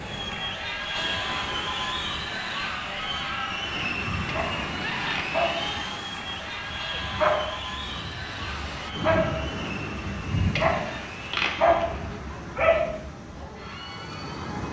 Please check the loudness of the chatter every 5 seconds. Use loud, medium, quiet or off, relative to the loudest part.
loud, loud, medium.